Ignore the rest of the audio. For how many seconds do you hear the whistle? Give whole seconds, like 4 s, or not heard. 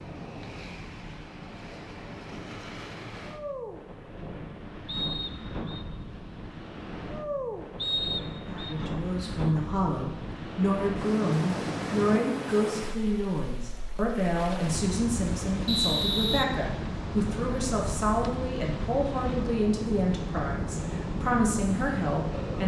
3 s.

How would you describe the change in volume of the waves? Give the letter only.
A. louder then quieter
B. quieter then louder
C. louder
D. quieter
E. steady
C.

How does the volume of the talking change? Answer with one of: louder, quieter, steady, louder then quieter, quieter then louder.
steady.